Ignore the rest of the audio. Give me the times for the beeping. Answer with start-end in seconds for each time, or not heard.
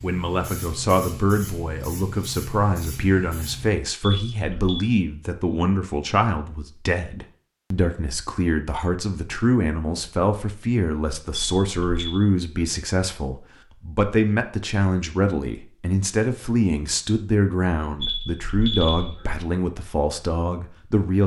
4.0-4.8, 11.3-12.2, 18.0-19.4.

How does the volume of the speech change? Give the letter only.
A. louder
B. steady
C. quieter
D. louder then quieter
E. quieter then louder
B.